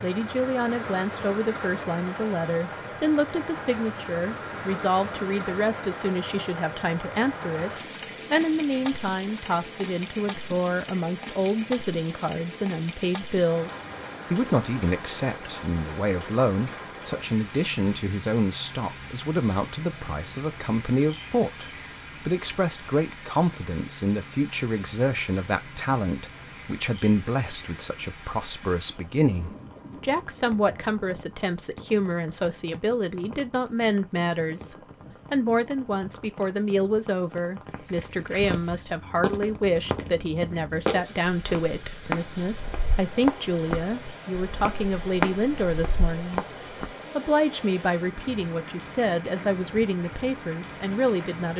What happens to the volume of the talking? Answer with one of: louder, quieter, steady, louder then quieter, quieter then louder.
steady.